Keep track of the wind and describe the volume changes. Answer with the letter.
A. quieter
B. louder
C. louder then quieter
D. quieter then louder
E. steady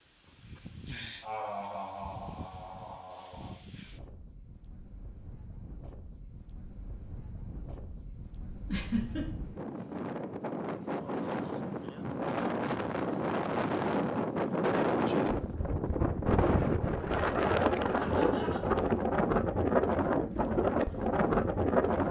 B.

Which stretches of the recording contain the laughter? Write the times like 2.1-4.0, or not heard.
1.2-3.5, 8.7-9.2, 17.9-18.6.